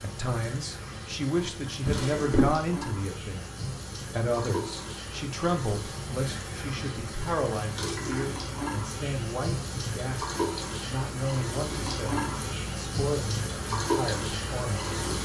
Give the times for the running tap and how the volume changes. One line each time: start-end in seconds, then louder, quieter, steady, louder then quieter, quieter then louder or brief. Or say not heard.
0.0-15.2 louder.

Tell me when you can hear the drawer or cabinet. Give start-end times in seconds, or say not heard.
1.9-2.5.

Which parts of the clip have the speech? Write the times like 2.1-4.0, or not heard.
0.0-14.8.